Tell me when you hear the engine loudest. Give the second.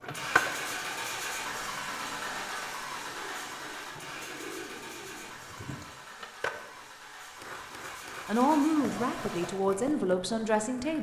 1 s.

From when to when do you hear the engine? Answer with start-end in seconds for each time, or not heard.
0.0-9.6.